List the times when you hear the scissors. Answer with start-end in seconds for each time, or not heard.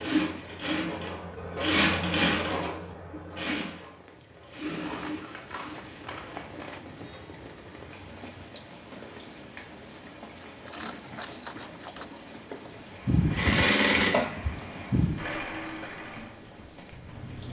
4.8-6.8, 10.1-12.2.